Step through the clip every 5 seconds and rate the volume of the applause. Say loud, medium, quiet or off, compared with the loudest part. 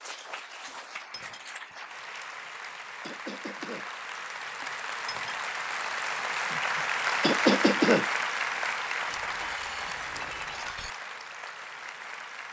medium, loud, medium.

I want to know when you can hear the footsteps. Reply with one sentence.
You can't hear the footsteps here.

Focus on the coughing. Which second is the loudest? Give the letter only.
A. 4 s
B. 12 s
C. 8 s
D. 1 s
C.